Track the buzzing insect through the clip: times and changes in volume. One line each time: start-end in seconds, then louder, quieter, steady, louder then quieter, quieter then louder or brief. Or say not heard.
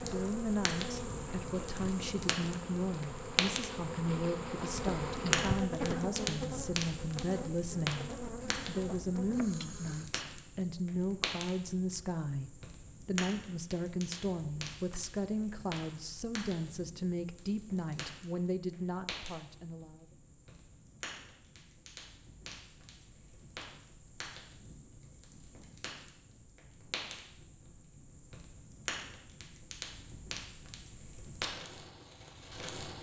0.0-10.1 louder then quieter.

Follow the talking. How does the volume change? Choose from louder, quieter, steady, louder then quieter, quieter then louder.
steady.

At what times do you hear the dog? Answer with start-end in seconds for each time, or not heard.
not heard.